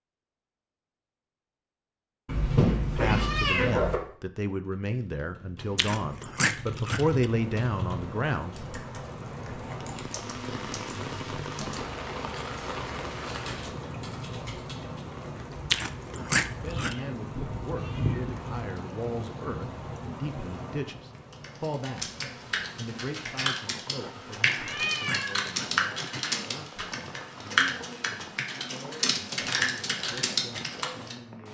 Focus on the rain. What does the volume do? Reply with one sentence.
The volume of the rain goes down.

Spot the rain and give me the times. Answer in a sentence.
You can hear the rain from 7.2 to 31.5 s.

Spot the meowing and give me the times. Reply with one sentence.
The meowing can be heard from 2.2 to 4.0 s, from 16.5 to 18.5 s and from 24.6 to 25.4 s.